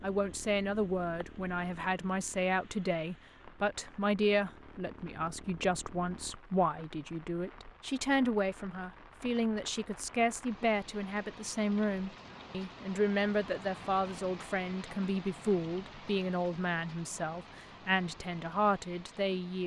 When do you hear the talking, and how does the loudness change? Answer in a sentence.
The talking can be heard from 0.0 to 19.6 s, at a steady volume.